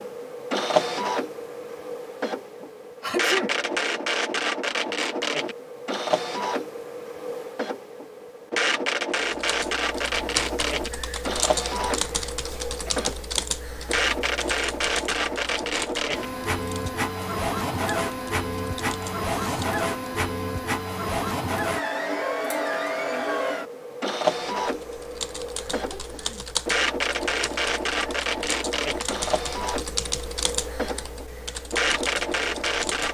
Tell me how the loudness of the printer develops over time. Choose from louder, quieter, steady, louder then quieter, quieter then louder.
steady.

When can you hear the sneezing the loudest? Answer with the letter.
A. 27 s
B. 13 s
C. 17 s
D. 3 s
D.